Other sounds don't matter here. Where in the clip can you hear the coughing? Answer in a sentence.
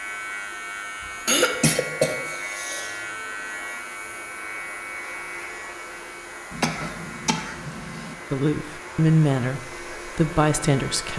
The coughing can be heard from 1.2 to 3.0 s and from 6.5 to 8.2 s.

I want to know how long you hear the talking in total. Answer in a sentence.
The talking can be heard for 3 seconds in total.